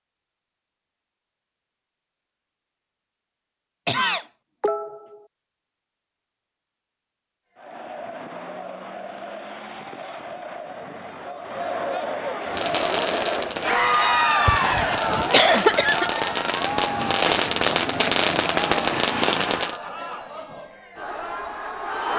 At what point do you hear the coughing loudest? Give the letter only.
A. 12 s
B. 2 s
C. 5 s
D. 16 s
D.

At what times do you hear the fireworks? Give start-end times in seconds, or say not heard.
12.4-19.8.